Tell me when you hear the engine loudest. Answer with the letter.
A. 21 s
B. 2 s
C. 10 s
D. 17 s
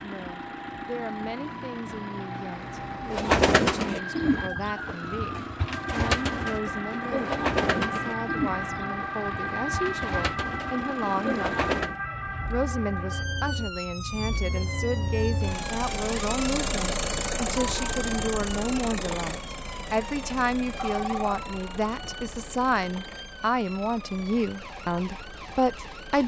D.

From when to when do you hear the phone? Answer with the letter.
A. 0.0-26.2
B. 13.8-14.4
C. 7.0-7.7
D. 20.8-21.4
D.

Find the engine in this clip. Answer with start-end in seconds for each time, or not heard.
0.0-26.2.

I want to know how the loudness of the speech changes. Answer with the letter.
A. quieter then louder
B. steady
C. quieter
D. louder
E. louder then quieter
D.